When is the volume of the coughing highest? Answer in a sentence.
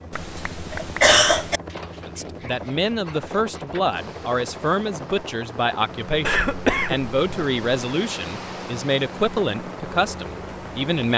The volume of the coughing peaks at 1 second.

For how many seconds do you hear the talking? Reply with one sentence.
You can hear the talking for 9 seconds altogether.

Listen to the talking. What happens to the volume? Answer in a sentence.
The volume of the talking stays about the same.